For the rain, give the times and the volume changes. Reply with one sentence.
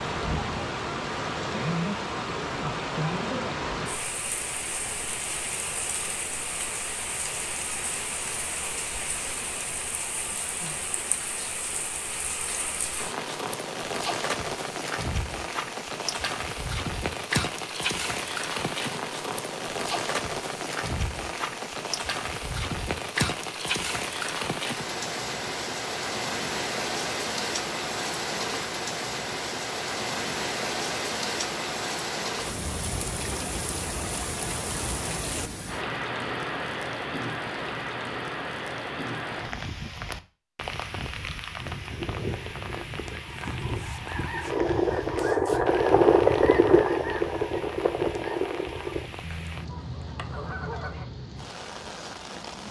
You can hear the rain from 0.0 to 52.6 s, getting quieter.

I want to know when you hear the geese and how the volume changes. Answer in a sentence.
You can hear the geese from 41.5 to 51.0 s, getting louder then quieter.